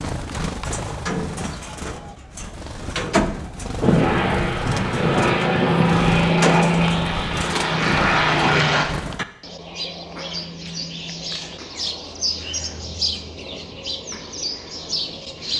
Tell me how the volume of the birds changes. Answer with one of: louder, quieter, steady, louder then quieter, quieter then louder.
steady.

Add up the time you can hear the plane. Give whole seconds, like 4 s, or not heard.
5 s.